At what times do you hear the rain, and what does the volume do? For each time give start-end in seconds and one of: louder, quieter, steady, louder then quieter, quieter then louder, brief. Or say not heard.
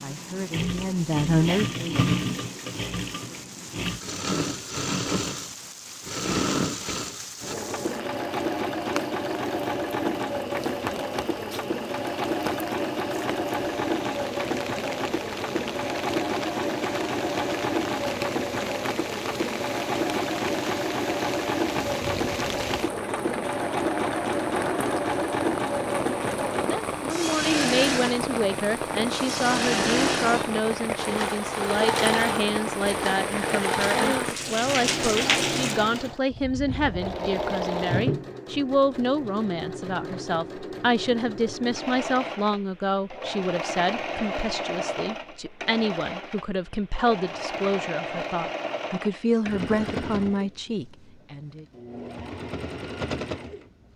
0.0-35.8 louder.